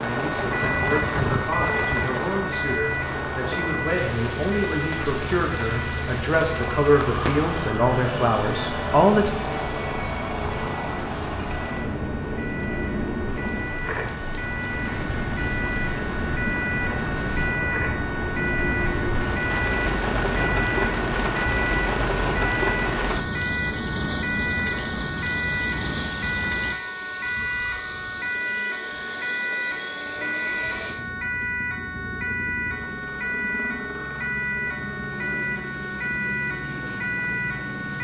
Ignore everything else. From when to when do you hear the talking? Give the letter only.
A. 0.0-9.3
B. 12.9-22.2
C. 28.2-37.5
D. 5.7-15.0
A.